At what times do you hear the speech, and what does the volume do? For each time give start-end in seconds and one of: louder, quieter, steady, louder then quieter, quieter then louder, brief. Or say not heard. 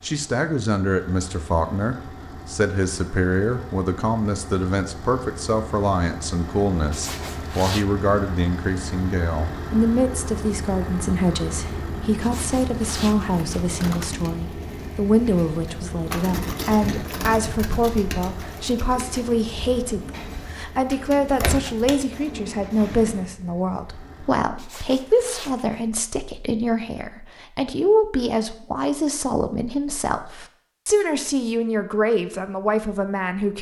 0.0-33.5 steady.